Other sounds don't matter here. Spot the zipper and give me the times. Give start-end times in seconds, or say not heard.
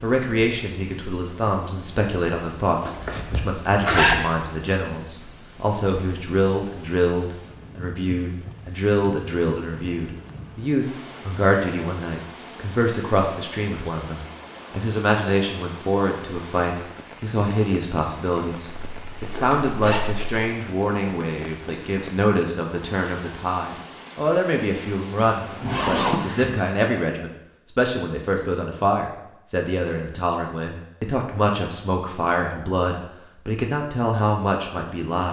2.9-4.2, 18.8-20.4, 25.3-26.5.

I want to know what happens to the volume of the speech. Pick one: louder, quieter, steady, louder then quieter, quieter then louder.
steady.